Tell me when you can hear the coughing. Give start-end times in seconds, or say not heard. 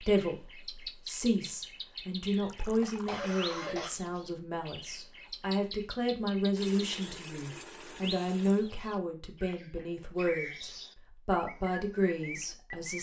2.3-3.9.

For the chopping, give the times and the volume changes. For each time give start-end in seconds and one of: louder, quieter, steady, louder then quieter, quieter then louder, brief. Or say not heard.
not heard.